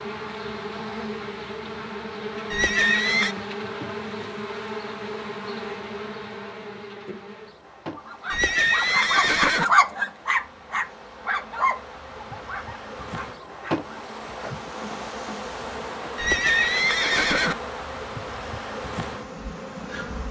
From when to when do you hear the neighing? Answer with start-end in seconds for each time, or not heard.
2.5-3.4, 8.3-9.7, 16.1-17.6.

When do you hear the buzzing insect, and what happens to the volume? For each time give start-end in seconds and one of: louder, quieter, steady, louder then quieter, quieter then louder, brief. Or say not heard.
0.0-20.2 quieter then louder.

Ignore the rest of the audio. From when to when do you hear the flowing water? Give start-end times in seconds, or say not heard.
not heard.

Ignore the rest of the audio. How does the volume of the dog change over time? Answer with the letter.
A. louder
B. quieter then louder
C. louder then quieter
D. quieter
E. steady
C.